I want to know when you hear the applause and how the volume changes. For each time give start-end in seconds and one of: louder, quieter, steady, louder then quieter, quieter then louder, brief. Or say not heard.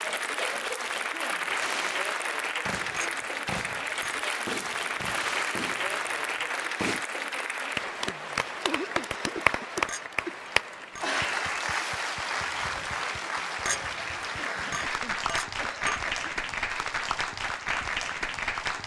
0.0-18.8 steady.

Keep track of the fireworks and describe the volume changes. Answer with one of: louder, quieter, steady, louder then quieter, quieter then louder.
quieter.